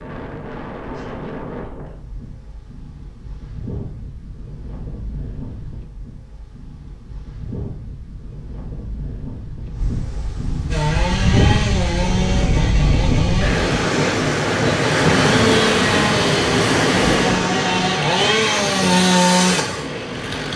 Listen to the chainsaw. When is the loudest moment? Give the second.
19 s.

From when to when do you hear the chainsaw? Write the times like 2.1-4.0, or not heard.
10.7-20.5.